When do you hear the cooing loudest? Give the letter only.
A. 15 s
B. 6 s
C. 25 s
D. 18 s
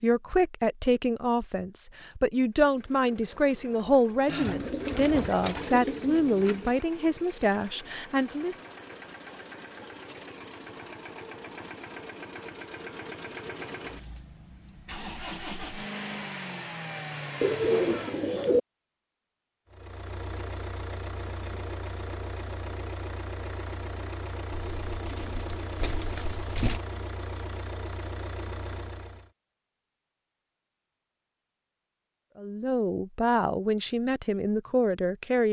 D.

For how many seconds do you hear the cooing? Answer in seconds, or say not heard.
6 s.